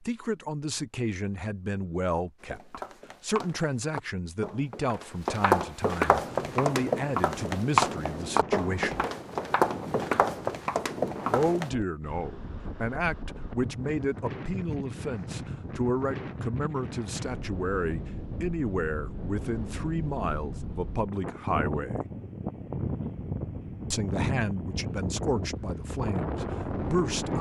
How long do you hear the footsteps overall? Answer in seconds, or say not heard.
9 s.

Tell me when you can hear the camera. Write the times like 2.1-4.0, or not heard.
not heard.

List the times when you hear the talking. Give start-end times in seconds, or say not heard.
0.0-9.1, 11.2-22.0, 23.9-27.3.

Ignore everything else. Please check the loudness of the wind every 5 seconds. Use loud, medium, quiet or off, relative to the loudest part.
off, medium, medium, medium, loud, loud.